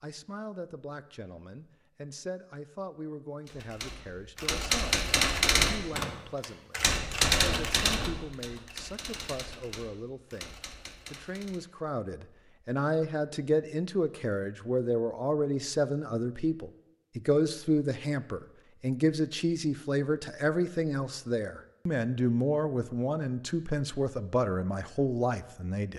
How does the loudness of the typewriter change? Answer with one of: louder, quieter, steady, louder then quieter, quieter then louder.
quieter.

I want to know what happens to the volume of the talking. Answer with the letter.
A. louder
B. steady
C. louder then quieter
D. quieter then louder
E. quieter
A.